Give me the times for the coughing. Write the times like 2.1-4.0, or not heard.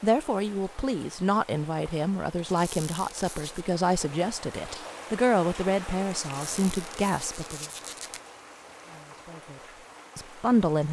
not heard.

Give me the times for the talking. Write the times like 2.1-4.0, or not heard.
0.0-7.7, 8.8-10.8.